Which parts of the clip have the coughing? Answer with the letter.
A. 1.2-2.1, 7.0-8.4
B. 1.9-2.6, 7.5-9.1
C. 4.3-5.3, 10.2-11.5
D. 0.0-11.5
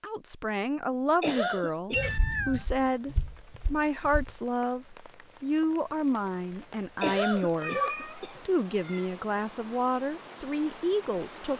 A.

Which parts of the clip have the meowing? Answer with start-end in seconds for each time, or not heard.
1.9-2.6, 7.5-9.1.